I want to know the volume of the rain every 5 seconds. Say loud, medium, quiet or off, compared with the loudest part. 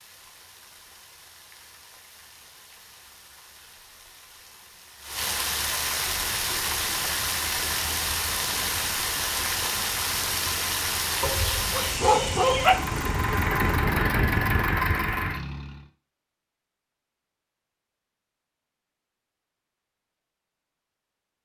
quiet, loud, loud, off, off.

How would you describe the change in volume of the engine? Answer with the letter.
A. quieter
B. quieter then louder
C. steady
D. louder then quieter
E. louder
E.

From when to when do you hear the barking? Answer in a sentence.
You can hear the barking from 11.2 to 12.8 s.